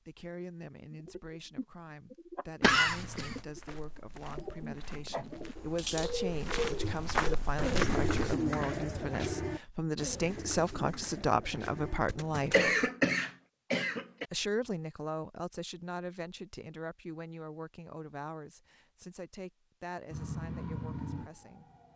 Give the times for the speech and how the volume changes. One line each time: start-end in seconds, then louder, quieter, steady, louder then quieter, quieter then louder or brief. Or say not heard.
0.1-12.7 louder
14.3-21.7 quieter.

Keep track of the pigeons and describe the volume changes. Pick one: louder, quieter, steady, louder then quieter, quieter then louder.
louder then quieter.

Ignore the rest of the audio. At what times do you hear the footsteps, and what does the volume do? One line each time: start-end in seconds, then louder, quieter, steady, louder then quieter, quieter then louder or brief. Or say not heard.
2.9-8.3 louder.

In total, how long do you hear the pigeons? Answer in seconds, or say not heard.
12 s.